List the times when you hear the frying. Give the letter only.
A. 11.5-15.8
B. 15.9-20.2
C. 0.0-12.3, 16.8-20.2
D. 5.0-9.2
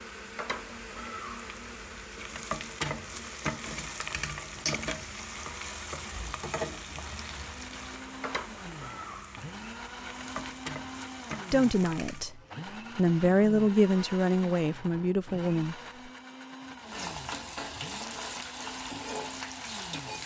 C.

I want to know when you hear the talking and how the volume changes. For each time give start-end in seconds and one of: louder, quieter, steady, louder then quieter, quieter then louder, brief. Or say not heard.
11.5-15.8 louder then quieter.